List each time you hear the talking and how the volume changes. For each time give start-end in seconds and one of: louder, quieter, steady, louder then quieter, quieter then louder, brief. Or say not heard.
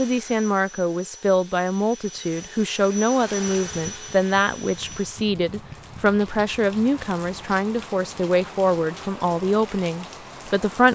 0.0-10.9 steady.